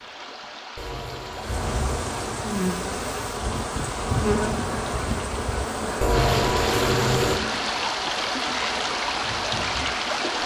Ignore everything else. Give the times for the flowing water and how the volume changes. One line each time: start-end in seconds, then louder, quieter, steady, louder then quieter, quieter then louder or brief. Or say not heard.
0.0-10.4 louder.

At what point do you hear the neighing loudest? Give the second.
6 s.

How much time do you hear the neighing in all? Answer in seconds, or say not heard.
3 s.